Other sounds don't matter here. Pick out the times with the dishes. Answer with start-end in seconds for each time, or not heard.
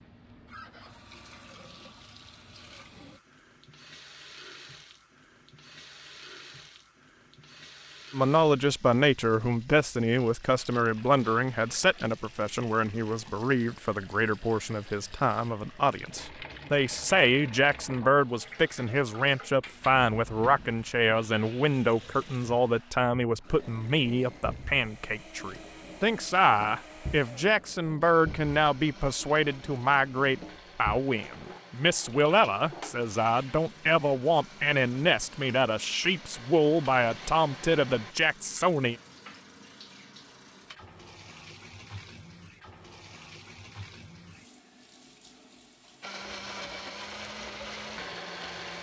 not heard.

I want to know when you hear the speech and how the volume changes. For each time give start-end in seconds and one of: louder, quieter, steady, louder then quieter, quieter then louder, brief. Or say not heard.
8.1-39.0 steady.